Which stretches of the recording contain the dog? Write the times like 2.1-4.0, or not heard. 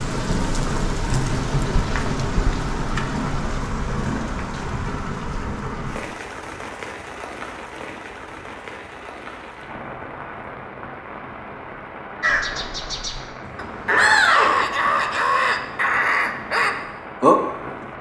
not heard.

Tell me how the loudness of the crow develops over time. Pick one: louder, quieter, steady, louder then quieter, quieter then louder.
louder.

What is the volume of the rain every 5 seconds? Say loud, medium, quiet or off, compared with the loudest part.
loud, medium, medium, medium.